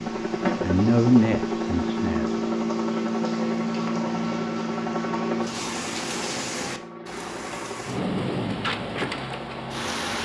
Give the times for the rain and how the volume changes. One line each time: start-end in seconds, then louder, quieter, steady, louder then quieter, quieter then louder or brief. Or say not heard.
0.0-10.2 louder.